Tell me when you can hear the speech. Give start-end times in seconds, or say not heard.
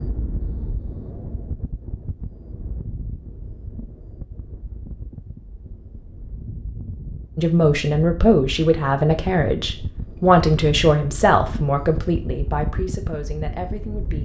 7.3-14.2.